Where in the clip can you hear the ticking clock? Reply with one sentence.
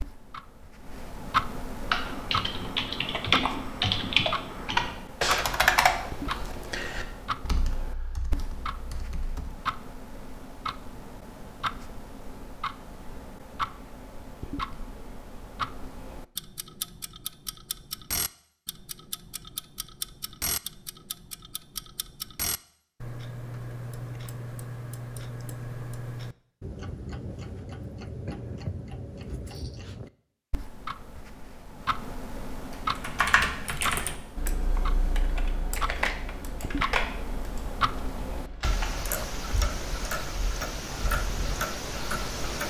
You can hear the ticking clock from 0.0 to 42.6 s.